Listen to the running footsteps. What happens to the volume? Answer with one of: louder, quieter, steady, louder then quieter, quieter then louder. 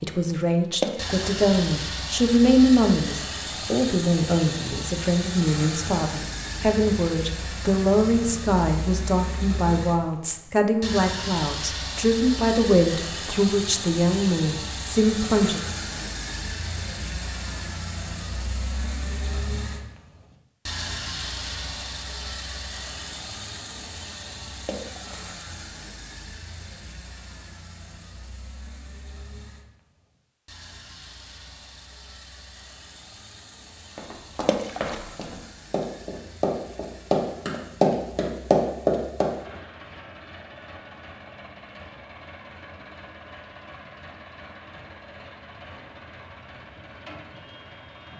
louder.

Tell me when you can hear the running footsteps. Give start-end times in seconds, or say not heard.
33.9-39.3.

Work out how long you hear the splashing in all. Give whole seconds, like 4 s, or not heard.
2 s.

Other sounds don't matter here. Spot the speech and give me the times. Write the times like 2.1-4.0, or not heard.
0.0-15.6.